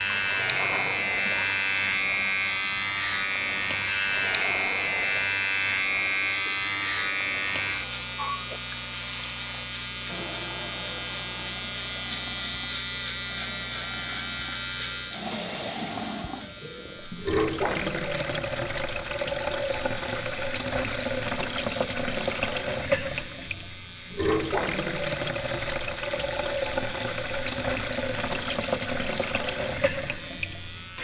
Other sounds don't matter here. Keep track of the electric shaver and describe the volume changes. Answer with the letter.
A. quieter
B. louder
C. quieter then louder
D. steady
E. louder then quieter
A.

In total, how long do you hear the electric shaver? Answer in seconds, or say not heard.
31 s.